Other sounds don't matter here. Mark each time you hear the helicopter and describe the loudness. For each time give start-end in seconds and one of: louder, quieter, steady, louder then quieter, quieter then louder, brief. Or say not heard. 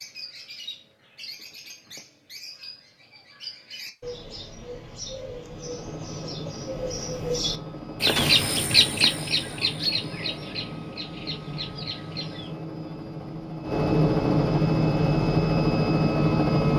5.3-16.7 louder.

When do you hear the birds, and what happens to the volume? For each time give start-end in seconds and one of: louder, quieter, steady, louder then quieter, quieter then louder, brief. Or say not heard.
0.0-12.6 louder then quieter.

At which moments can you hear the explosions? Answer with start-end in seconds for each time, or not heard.
8.2-8.7.